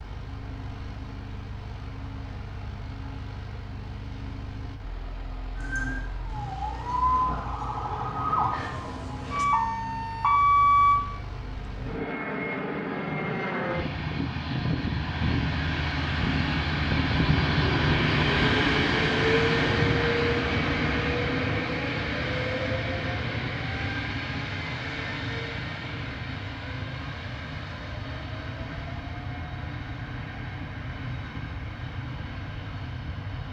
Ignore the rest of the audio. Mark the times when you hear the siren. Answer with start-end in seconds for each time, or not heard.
5.5-11.0.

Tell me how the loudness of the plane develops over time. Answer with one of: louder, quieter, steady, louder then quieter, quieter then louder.
louder then quieter.